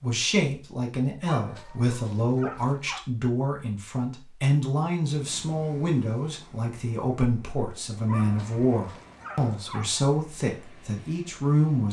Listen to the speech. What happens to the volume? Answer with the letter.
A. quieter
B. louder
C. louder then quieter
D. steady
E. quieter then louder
D.